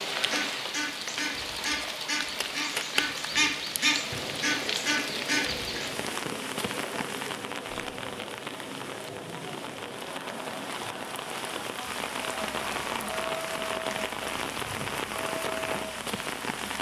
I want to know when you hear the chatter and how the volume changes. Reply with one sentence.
You can hear the chatter from 3.9 to 16.7 s, at a steady volume.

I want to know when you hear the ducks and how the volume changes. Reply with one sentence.
The ducks can be heard from 0.1 to 5.8 s, getting louder.